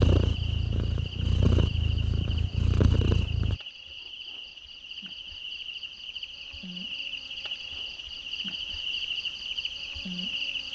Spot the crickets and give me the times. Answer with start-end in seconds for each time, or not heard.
0.0-10.6.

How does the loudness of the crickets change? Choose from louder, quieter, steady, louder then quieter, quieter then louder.
louder.